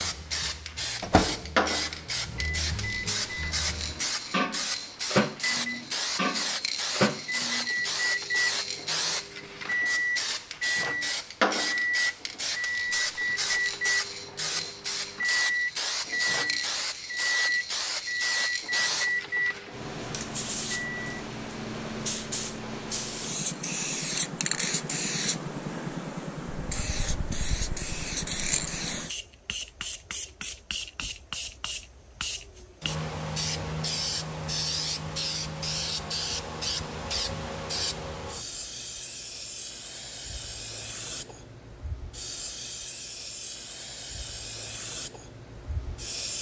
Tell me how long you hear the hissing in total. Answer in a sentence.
You can hear the hissing for 46 seconds altogether.